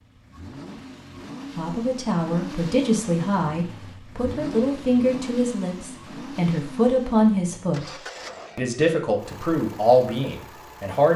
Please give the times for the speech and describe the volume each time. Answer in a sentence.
The speech can be heard from 1.6 to 11.1 s, at a steady volume.